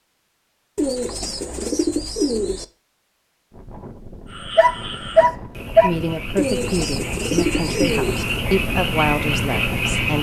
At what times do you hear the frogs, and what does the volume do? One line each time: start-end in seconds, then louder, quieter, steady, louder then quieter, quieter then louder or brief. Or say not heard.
4.2-10.1 louder.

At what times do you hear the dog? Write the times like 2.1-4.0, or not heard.
4.5-5.9.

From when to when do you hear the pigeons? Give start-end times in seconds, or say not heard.
0.8-2.6, 6.3-8.2.